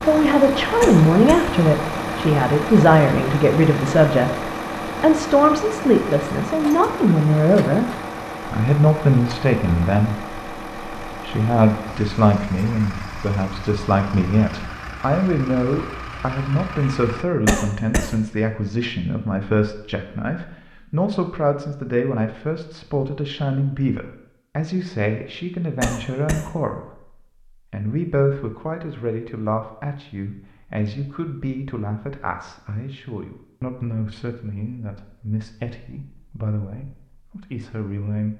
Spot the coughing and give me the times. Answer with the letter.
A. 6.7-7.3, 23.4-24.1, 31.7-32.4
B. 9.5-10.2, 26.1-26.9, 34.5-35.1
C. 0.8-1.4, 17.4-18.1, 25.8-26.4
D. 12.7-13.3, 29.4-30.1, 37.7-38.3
C.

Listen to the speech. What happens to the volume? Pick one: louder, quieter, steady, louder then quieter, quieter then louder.
quieter.